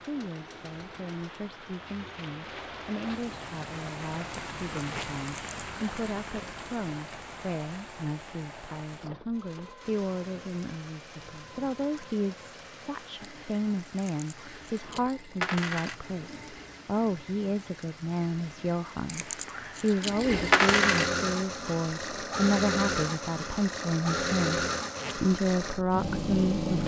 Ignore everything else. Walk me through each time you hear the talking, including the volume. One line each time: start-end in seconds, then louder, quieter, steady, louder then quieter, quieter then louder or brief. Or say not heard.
0.0-26.8 louder.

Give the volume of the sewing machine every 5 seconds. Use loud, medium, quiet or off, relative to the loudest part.
quiet, quiet, quiet, quiet, loud, loud.